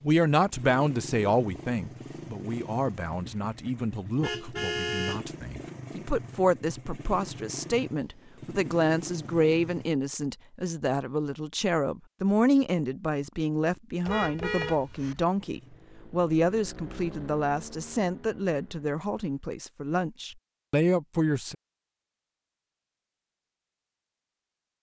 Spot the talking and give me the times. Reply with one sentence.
You can hear the talking from 0.0 to 21.6 s.